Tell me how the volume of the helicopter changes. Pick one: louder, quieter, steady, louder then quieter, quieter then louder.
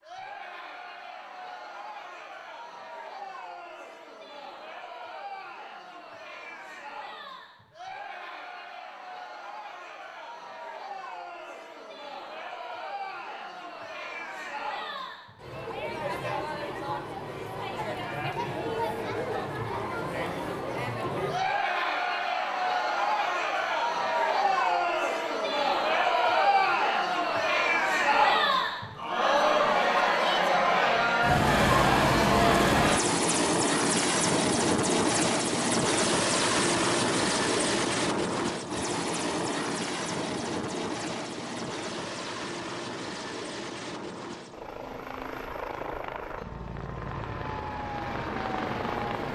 quieter.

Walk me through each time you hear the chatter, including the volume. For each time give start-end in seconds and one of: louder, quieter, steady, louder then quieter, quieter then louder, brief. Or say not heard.
0.0-33.0 louder.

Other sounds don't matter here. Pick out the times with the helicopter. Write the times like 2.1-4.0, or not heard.
31.2-49.3.